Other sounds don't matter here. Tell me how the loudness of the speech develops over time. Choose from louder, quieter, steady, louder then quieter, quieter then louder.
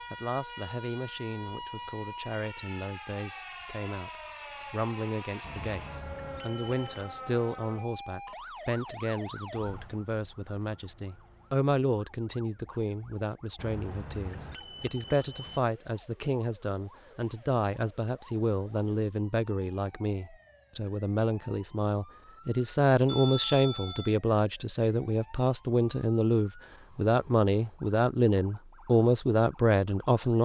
louder.